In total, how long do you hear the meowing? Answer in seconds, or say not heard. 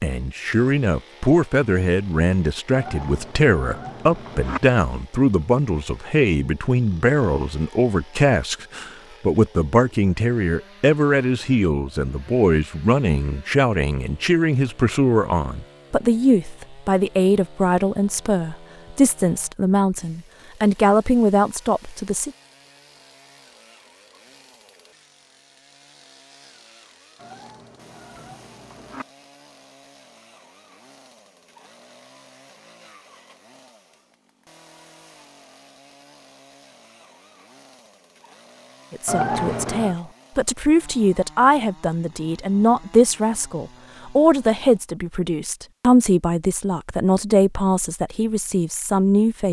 5 s.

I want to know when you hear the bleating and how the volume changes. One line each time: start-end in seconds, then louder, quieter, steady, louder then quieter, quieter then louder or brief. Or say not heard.
not heard.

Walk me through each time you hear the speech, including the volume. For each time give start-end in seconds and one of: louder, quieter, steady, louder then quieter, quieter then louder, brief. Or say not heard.
0.0-22.3 steady
38.9-49.4 steady.